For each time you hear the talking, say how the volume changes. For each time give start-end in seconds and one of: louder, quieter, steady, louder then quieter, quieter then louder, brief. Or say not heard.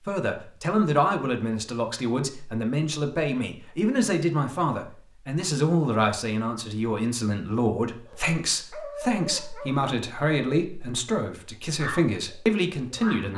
0.0-13.3 steady.